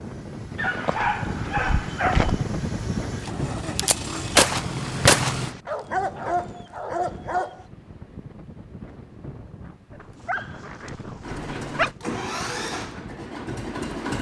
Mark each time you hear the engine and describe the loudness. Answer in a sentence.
The engine can be heard from 0.0 to 5.5 s, getting louder; and briefly from 11.2 to 14.1 s.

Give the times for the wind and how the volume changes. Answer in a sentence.
The wind can be heard from 0.0 to 13.9 s, getting quieter.